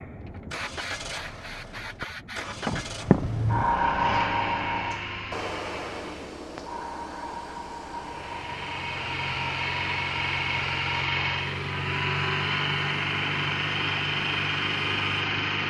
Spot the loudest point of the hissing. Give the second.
4 s.